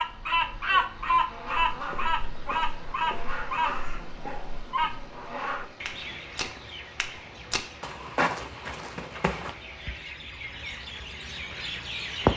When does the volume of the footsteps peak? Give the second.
8 s.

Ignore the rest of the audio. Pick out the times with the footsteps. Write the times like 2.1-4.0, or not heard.
1.5-9.6.